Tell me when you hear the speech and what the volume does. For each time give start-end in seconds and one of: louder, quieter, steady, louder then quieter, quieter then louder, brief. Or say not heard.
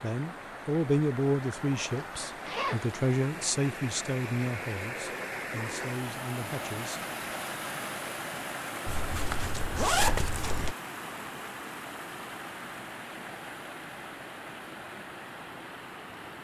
0.0-7.0 quieter.